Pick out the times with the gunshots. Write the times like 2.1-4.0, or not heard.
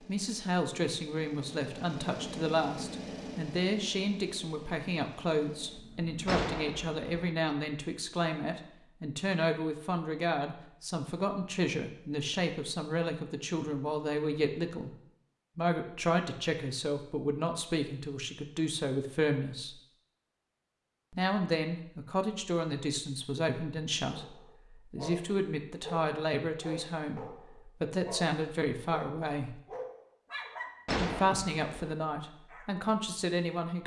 6.2-7.3, 30.9-31.9.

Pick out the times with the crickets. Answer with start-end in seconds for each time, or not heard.
not heard.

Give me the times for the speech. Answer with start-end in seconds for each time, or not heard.
0.1-14.9, 15.6-19.8, 21.1-29.6, 30.9-33.8.